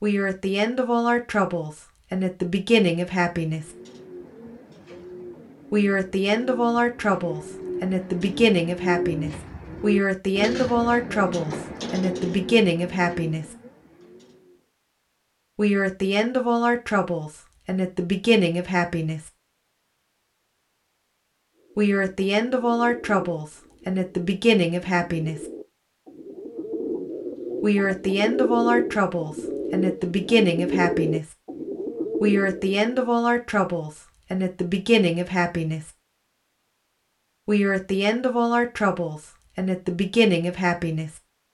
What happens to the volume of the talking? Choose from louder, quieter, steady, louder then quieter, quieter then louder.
steady.